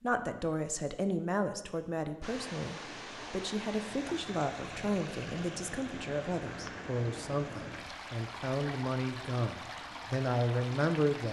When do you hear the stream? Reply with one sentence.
The stream can be heard from 2.2 to 11.2 s.